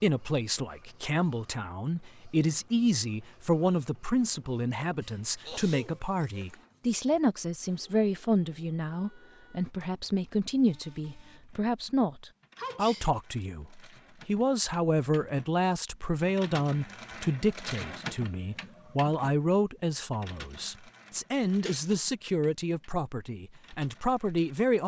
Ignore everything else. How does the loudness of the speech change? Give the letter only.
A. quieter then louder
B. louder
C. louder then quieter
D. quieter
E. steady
E.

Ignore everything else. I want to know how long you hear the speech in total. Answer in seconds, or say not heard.
25 s.